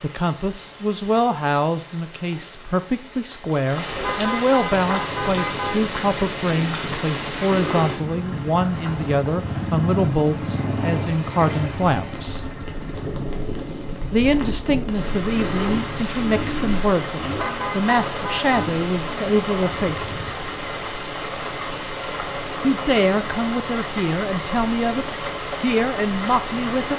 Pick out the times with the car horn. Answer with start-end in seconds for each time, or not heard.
3.9-5.8, 17.2-18.6.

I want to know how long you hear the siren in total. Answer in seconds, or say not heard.
not heard.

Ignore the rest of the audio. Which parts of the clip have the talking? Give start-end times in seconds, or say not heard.
0.0-12.4, 14.1-20.5, 22.6-26.9.